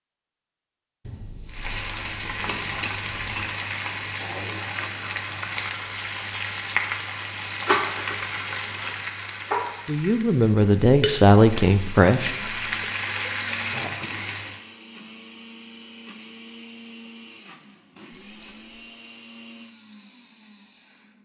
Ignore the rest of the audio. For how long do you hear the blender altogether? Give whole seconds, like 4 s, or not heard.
9 s.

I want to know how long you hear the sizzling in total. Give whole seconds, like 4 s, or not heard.
13 s.